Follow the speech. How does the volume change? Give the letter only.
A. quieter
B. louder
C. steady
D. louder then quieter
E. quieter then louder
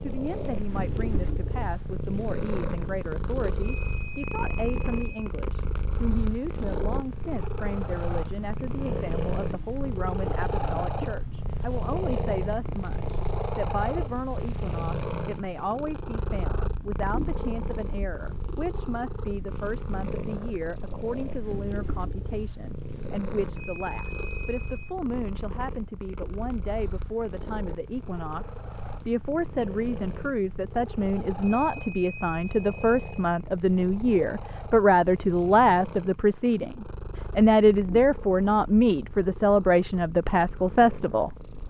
B.